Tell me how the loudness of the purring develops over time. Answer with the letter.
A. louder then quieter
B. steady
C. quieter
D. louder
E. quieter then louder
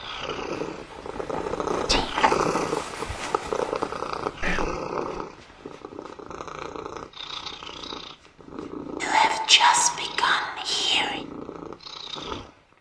C.